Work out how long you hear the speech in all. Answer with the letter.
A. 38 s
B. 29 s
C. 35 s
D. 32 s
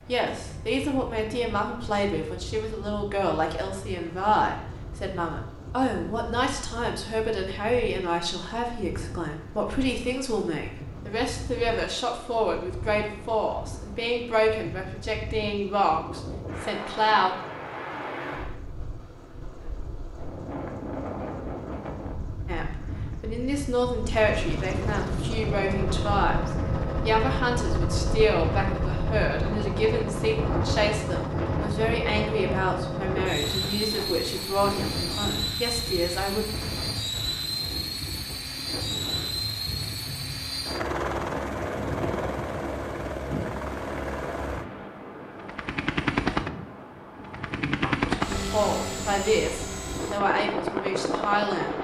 C.